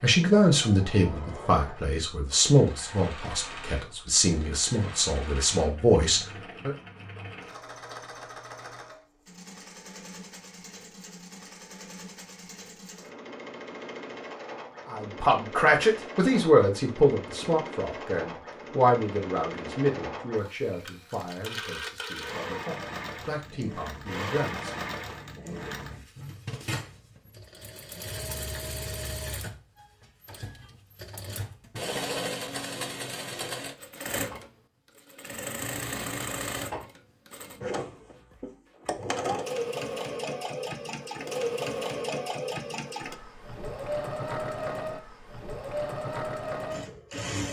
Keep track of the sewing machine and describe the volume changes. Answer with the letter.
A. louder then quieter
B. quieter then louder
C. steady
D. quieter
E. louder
E.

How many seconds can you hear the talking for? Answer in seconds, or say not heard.
17 s.